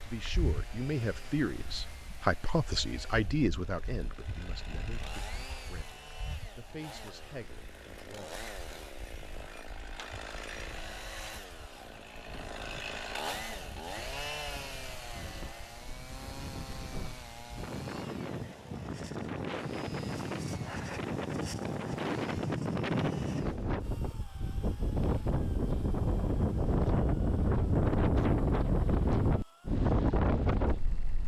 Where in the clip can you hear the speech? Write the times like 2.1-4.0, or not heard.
0.0-8.4.